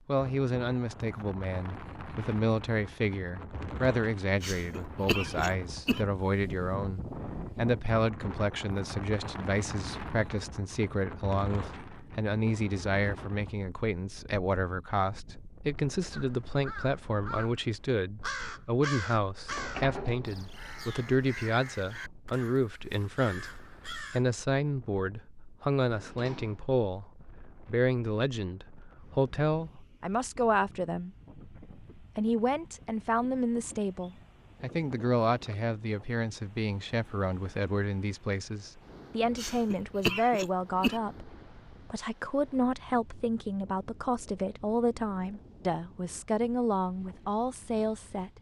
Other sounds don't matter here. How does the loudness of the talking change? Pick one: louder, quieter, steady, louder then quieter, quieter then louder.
steady.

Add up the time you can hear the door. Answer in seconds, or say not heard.
2 s.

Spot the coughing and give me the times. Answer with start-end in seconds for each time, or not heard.
4.4-6.0, 39.4-41.0.